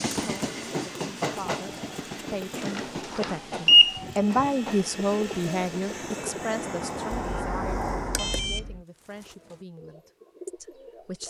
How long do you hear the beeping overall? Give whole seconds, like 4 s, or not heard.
3 s.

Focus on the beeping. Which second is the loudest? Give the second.
4 s.